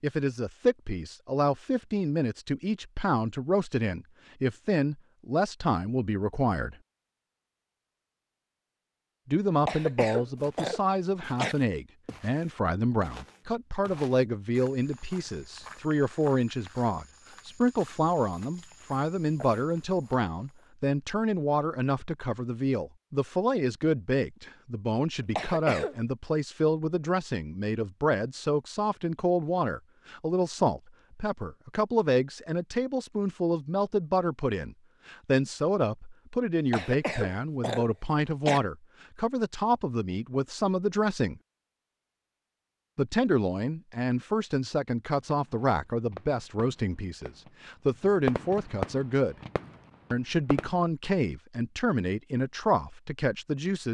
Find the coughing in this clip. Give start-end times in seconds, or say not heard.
9.7-11.6, 25.4-25.9, 36.7-38.6.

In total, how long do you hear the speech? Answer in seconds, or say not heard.
49 s.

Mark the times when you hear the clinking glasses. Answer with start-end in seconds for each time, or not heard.
not heard.